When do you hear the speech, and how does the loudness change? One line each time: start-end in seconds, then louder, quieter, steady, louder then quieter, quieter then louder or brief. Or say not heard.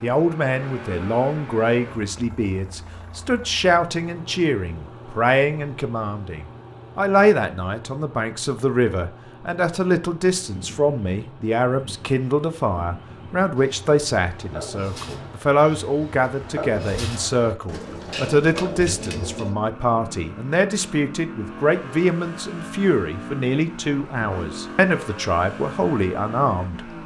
0.0-26.8 steady.